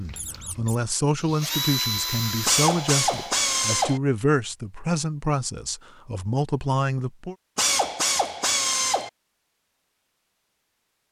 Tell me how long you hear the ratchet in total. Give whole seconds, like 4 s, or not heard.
3 s.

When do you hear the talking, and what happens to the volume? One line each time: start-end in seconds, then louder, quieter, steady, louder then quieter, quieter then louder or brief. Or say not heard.
0.0-7.3 steady.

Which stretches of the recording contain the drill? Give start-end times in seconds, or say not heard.
0.0-3.4.